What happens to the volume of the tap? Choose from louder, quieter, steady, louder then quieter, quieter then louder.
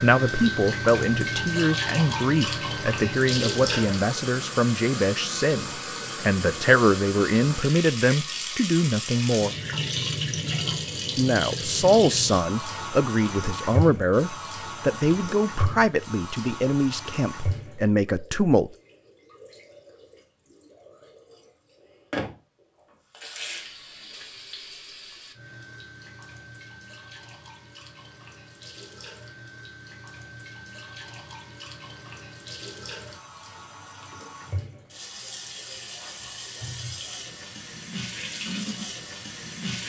quieter then louder.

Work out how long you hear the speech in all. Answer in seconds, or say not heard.
17 s.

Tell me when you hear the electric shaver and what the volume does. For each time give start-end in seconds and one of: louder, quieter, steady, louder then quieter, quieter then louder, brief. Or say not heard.
not heard.